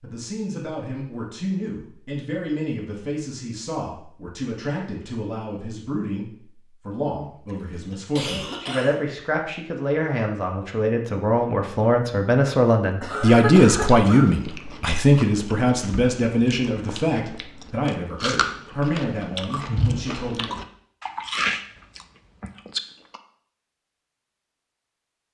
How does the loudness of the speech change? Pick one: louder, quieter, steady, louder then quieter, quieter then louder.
louder then quieter.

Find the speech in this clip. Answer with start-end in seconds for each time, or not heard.
0.0-20.6.